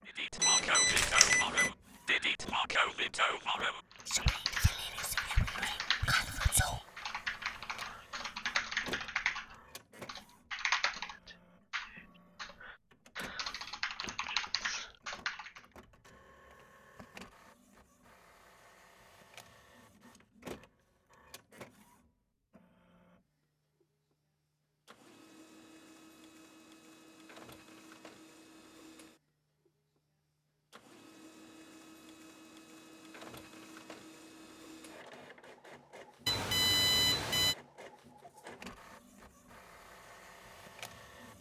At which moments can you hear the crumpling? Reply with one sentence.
You can hear the crumpling from 0.8 to 1.4 s.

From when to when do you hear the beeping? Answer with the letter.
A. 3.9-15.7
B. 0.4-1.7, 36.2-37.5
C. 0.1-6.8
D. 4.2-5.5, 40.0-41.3
B.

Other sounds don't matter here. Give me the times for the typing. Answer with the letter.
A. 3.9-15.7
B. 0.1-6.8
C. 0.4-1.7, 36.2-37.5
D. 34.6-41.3
A.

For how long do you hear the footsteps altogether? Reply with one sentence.
You can't hear the footsteps here.